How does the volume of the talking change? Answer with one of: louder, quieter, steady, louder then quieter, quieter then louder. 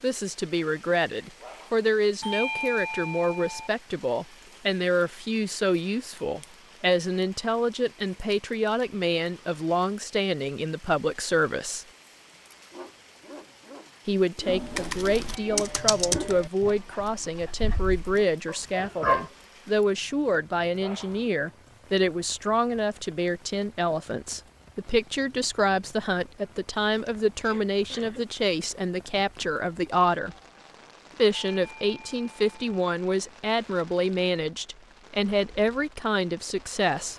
steady.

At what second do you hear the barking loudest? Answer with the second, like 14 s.
19 s.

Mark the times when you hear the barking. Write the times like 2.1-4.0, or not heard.
12.7-19.3.